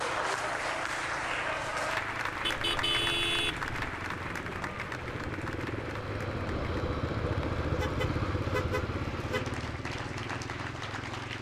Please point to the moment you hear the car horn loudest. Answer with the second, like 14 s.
3 s.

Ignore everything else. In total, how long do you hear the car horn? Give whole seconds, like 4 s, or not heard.
3 s.